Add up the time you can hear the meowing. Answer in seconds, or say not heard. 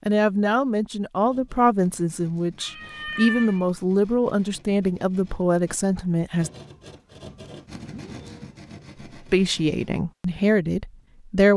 2 s.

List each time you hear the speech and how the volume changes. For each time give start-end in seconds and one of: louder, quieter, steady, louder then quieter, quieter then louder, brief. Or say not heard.
0.1-6.5 steady
9.3-11.5 brief.